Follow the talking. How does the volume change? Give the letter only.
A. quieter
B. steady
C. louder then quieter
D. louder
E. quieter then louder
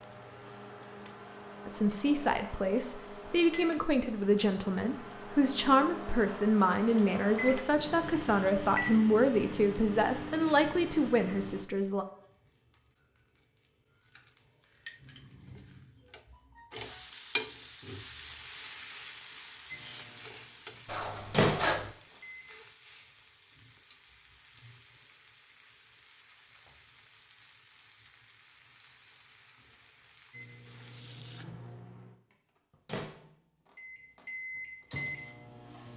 B.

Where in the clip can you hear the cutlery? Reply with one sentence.
The cutlery can be heard from 20.9 to 21.9 s.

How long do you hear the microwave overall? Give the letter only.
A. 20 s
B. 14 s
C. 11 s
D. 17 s
A.